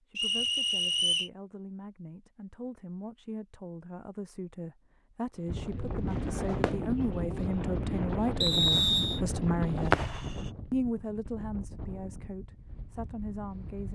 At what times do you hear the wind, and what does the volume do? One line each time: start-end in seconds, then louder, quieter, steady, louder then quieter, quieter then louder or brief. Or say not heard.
5.5-13.8 quieter.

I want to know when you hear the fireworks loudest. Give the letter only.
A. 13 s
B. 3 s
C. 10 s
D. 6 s
C.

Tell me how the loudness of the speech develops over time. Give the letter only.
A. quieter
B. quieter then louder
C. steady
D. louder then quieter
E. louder
D.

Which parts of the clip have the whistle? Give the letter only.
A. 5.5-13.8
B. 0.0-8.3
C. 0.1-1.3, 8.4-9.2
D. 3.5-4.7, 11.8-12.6
C.